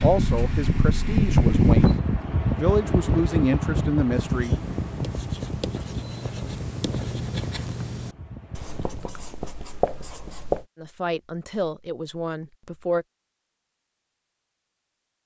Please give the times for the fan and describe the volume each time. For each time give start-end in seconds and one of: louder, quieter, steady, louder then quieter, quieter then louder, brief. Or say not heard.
0.0-9.2 quieter.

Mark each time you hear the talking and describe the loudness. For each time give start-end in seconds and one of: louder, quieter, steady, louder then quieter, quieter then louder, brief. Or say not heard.
0.0-4.5 louder
10.8-13.1 brief.